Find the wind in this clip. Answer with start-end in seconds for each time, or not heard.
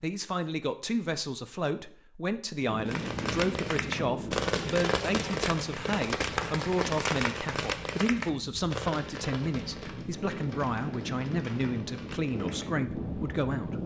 2.6-13.8.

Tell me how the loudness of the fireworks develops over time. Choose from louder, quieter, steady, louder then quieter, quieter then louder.
quieter.